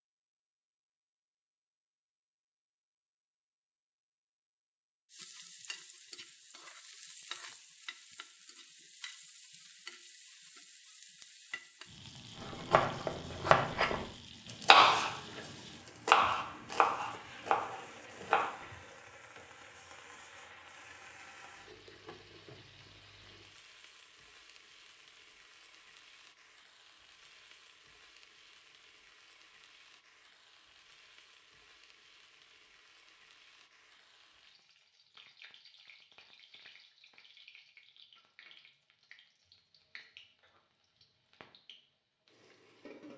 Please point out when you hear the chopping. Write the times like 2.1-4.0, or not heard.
12.3-15.2, 15.8-18.6.